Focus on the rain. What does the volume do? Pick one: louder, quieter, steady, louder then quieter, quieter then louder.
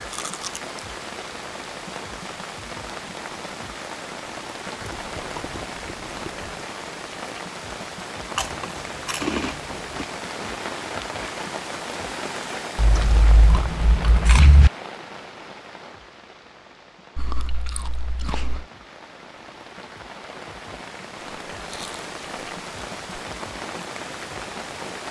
quieter then louder.